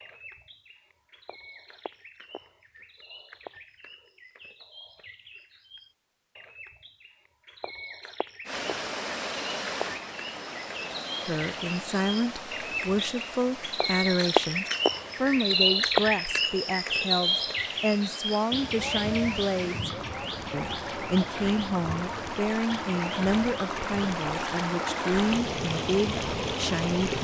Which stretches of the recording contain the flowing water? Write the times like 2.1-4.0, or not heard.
8.4-27.1.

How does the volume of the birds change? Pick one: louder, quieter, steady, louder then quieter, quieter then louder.
louder then quieter.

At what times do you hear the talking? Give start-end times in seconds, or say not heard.
11.2-19.9, 20.5-27.1.